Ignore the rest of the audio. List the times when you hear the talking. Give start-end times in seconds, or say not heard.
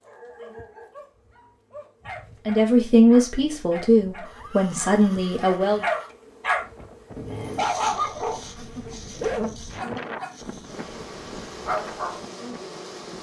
2.5-5.8.